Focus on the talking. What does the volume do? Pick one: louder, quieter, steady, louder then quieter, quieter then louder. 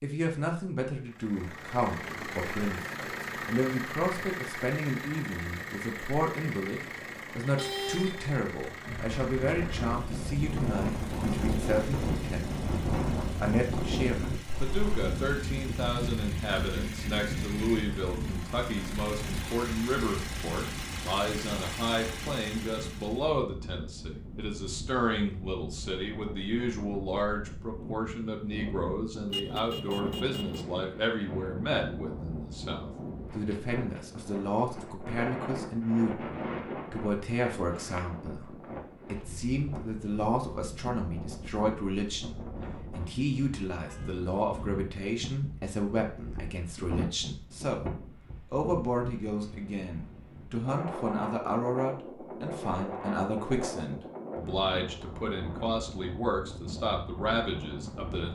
steady.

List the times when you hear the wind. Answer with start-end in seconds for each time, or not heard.
8.8-58.3.